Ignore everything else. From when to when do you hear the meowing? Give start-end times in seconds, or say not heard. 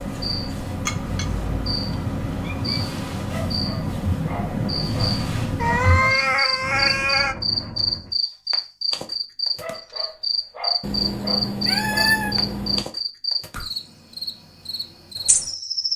0.8-3.4, 5.6-7.3, 10.8-12.8.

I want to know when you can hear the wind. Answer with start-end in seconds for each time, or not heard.
0.0-8.2.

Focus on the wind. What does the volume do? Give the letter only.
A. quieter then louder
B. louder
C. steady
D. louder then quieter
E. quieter
D.